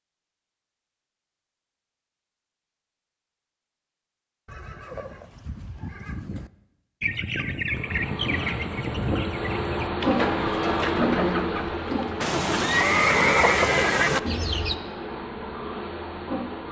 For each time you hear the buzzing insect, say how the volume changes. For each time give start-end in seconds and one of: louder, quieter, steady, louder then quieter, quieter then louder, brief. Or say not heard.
7.7-16.6 louder then quieter.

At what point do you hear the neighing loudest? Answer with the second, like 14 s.
13 s.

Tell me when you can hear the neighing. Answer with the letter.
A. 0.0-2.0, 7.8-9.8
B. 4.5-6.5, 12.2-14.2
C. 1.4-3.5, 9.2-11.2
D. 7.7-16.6
B.